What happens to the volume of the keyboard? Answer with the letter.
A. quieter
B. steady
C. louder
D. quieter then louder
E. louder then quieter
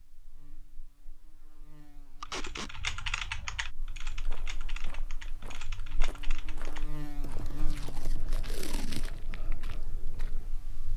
A.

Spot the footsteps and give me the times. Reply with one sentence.
You can hear the footsteps from 4.0 to 10.5 s.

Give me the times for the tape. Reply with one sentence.
You can hear the tape from 2.2 to 2.8 s and from 7.7 to 9.1 s.